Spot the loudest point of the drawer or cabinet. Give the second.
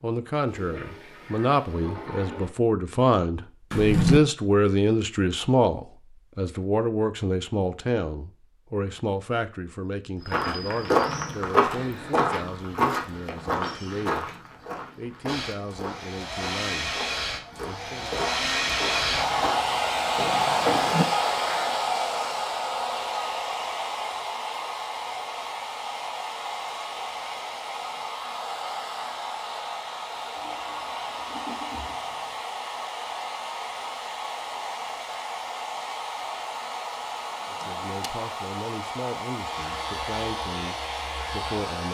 4 s.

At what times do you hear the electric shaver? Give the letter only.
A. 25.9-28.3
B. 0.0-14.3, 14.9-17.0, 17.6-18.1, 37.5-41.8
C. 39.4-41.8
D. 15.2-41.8
C.